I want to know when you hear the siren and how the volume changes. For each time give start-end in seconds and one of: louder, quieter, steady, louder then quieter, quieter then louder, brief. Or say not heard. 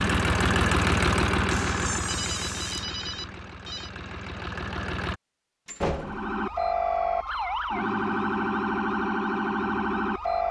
0.0-1.9 brief
5.9-10.4 steady.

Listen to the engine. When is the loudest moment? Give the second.
1 s.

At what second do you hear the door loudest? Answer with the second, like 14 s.
6 s.